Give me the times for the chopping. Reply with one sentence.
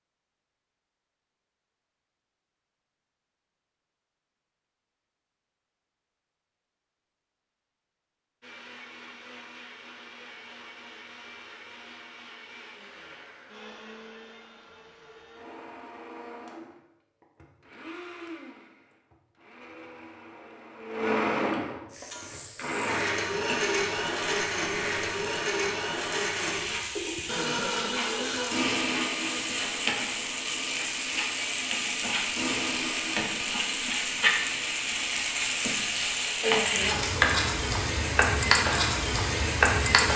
The chopping can't be heard in this clip.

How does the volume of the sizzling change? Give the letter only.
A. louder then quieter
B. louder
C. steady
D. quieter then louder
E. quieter
B.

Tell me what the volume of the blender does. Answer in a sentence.
The loudness of the blender goes up, then down.